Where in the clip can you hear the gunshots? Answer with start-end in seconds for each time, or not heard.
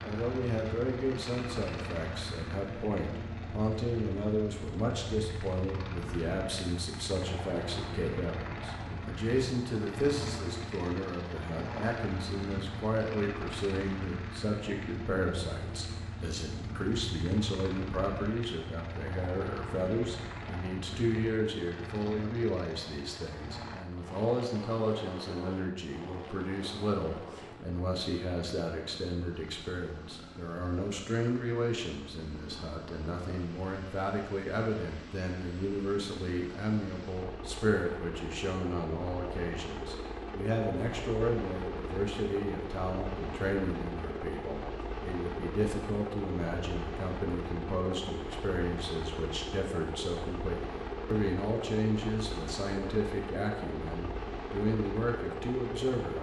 not heard.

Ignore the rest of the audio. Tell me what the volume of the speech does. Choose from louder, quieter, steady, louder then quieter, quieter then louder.
steady.